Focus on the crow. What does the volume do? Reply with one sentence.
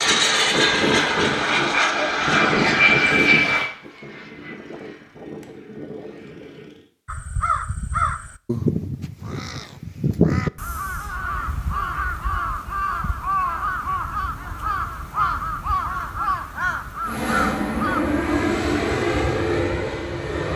The loudness of the crow stays about the same.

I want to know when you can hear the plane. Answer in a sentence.
You can hear the plane from 0.0 to 6.9 s and from 17.1 to 20.5 s.